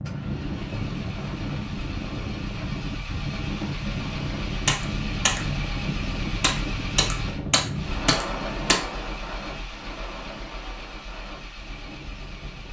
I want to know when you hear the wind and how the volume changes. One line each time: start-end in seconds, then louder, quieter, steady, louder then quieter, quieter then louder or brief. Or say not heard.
0.0-12.6 quieter.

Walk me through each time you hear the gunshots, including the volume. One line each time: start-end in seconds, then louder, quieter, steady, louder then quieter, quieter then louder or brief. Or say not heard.
4.7-8.8 quieter then louder.